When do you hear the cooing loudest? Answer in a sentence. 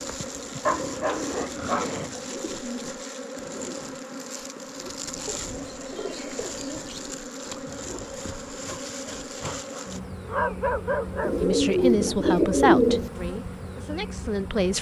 The loudest moment of the cooing is at 13 seconds.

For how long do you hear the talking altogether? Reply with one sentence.
You can hear the talking for 3 seconds altogether.